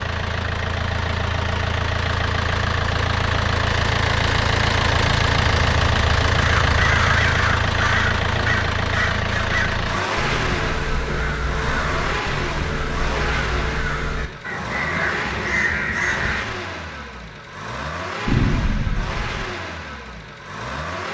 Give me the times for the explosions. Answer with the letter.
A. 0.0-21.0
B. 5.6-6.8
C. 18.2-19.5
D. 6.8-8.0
C.